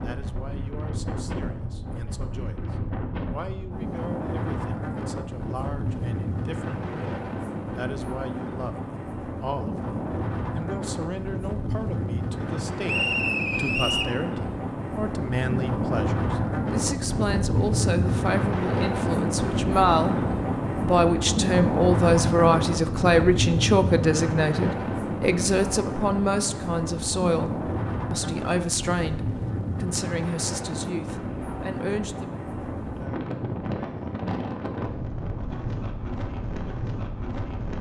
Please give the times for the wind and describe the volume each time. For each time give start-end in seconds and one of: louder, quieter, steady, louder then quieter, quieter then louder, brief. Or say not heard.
0.0-37.7 louder then quieter.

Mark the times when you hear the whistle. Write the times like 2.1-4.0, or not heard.
12.8-14.2.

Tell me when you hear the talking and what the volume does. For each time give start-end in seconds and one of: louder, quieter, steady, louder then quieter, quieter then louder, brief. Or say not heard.
0.0-20.1 louder
20.8-32.4 quieter.